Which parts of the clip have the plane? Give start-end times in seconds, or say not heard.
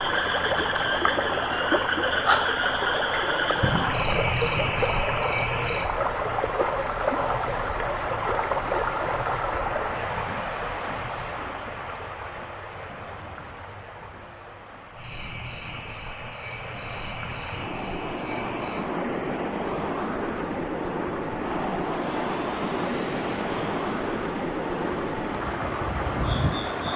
21.9-26.9.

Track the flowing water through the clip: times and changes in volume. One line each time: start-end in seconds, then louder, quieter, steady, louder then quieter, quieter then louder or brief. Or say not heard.
0.0-26.9 quieter then louder.